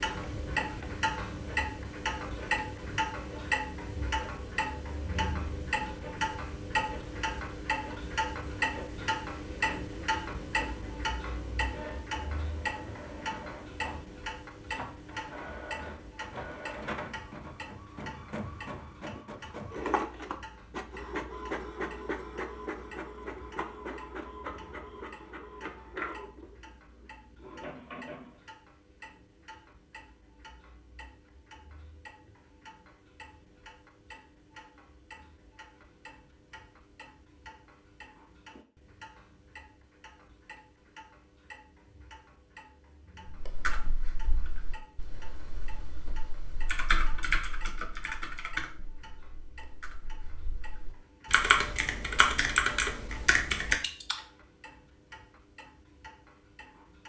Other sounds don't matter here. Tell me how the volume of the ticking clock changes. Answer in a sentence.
The volume of the ticking clock goes down.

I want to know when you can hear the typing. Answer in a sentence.
You can hear the typing from 43.2 to 54.1 s.